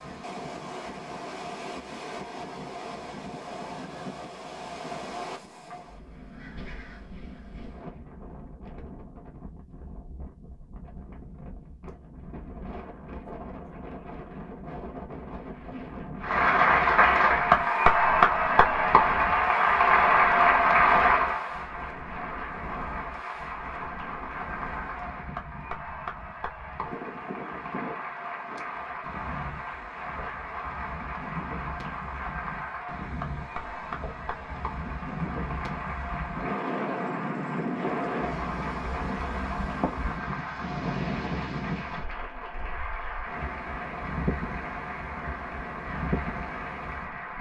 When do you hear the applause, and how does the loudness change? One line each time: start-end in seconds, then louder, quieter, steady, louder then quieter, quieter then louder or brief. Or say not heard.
16.2-47.3 quieter.